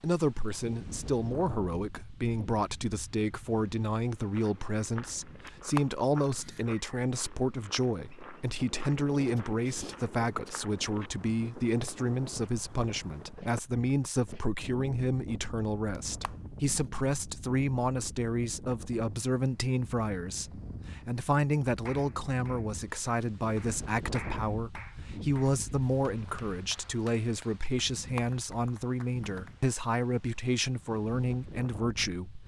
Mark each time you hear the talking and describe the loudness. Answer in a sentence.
The talking can be heard from 0.0 to 32.4 s, at a steady volume.